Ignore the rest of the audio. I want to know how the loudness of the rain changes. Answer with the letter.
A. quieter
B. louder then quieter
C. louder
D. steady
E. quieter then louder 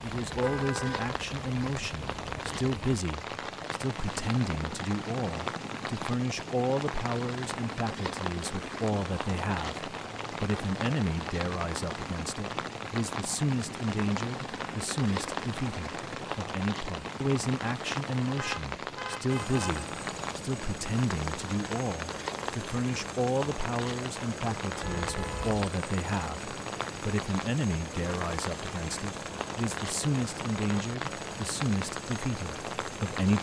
D.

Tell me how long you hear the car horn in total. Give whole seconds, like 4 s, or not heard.
3 s.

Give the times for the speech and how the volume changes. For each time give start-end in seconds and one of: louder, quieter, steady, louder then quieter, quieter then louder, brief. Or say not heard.
0.0-33.3 steady.